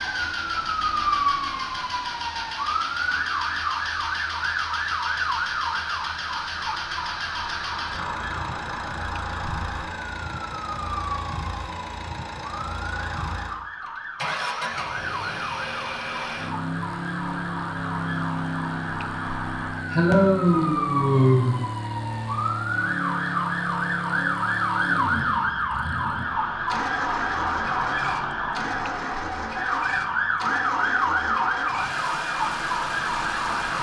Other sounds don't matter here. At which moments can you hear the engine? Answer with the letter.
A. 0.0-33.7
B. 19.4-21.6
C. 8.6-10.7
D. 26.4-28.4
A.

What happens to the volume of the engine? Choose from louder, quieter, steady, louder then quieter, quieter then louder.
steady.